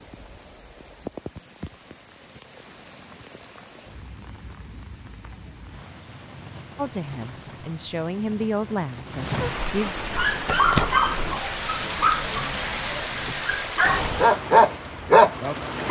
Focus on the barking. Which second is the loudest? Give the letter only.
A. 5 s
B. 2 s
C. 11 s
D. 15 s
D.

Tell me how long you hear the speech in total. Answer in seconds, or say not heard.
3 s.